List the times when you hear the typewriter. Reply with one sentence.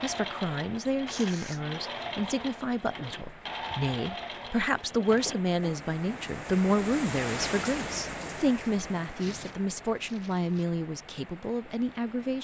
You can't hear the typewriter here.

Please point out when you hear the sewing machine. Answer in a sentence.
You can hear the sewing machine from 0.0 to 5.5 s.